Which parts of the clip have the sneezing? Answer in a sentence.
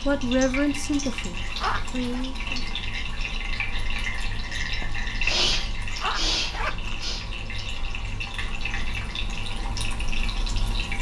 The sneezing can be heard from 4.9 to 7.3 s.